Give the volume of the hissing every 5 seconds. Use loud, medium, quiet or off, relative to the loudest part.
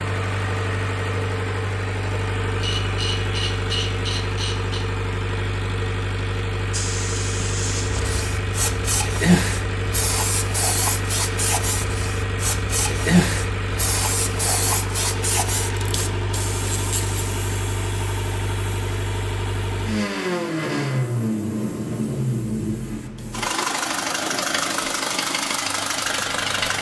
off, loud, loud, medium, quiet, quiet.